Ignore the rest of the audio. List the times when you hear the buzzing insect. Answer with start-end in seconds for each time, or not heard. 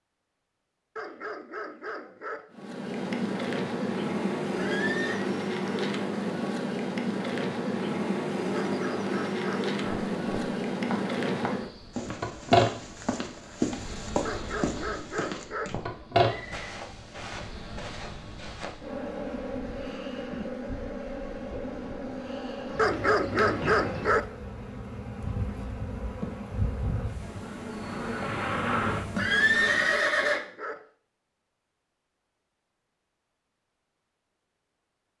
2.5-30.1.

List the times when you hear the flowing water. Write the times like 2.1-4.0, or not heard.
not heard.